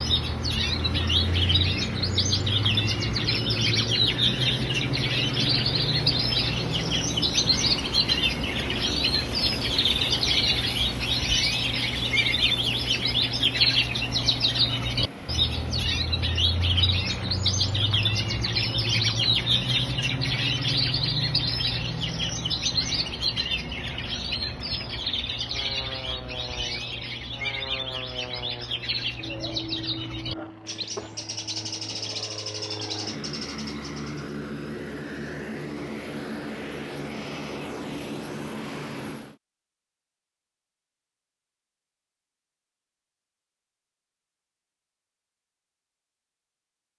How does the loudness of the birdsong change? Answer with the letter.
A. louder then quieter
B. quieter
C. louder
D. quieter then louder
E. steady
B.